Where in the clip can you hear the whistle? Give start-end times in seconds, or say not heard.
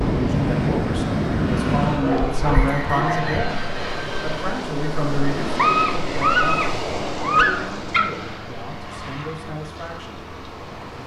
2.5-3.5.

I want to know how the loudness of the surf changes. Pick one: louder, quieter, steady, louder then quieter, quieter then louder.
quieter.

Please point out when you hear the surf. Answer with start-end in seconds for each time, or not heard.
0.0-11.0.